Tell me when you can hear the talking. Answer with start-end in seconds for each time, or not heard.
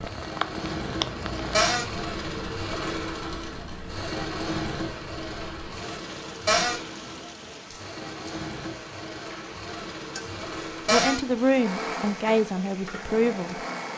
10.8-13.9.